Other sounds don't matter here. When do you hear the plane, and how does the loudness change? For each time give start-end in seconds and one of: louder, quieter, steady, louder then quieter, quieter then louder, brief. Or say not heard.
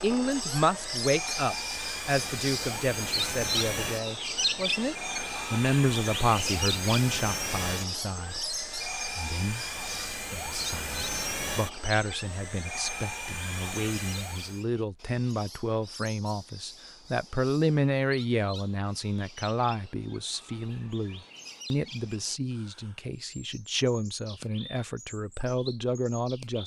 0.0-14.7 steady.